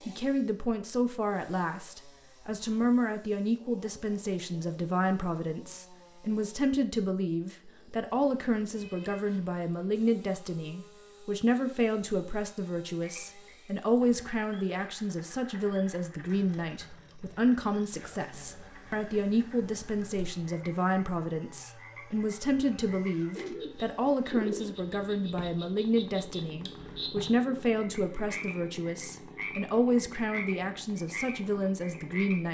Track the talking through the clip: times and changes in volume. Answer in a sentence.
The talking can be heard from 0.1 to 32.4 s, at a steady volume.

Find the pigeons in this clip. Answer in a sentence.
The pigeons can be heard from 23.4 to 24.8 s.